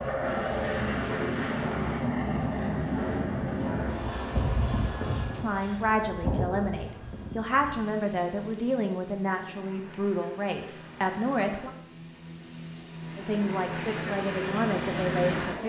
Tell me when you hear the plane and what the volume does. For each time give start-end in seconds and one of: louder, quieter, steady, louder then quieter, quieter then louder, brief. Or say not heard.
0.0-15.6 quieter then louder.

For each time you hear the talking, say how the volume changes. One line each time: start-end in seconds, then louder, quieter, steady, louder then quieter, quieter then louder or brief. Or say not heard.
5.3-11.7 steady
13.2-15.6 brief.